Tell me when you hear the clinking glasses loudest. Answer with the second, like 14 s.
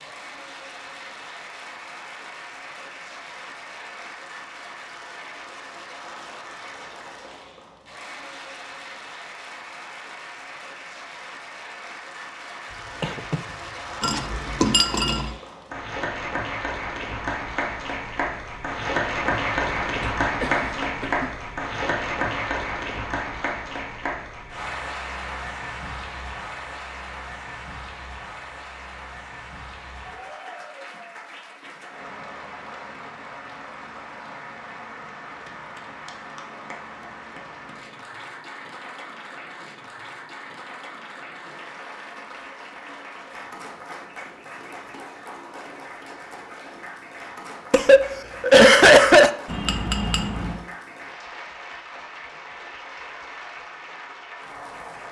15 s.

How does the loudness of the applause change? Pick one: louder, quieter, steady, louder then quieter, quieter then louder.
louder then quieter.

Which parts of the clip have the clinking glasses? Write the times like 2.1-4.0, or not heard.
14.0-15.3, 49.5-50.6.